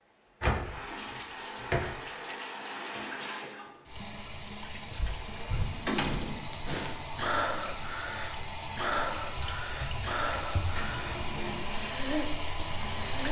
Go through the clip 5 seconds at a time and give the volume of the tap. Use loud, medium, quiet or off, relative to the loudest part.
medium, loud, loud.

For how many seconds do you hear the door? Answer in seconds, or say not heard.
4 s.